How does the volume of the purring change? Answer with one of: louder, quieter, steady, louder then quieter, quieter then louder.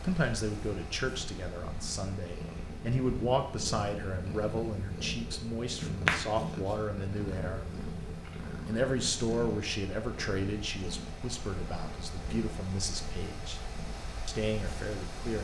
louder then quieter.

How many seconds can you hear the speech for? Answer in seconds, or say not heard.
14 s.